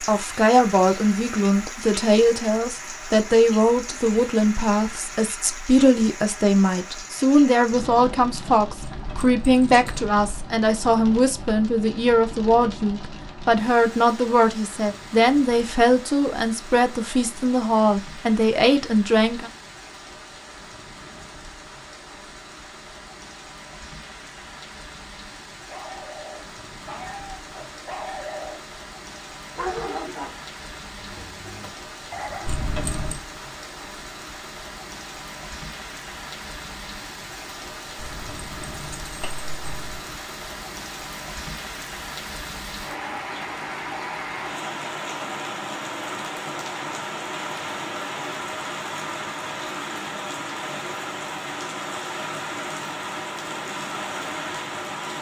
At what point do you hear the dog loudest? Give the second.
30 s.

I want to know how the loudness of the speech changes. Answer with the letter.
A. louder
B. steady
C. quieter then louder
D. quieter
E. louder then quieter
B.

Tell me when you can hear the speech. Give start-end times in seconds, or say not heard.
0.1-19.5.